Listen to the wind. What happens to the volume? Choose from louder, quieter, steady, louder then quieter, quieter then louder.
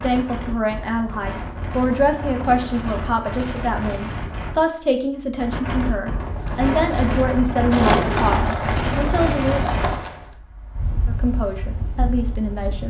louder then quieter.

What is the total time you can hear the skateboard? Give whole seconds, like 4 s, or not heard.
4 s.